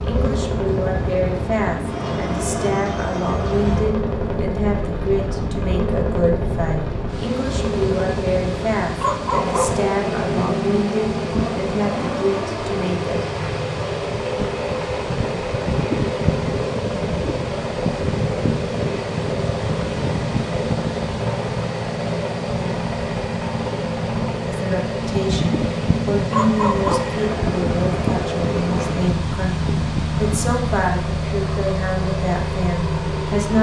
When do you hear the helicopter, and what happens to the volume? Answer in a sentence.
The helicopter can be heard from 0.0 to 33.5 s, at a steady volume.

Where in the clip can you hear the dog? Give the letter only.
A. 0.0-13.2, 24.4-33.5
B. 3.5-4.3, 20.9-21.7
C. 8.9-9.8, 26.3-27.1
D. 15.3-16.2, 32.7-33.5
C.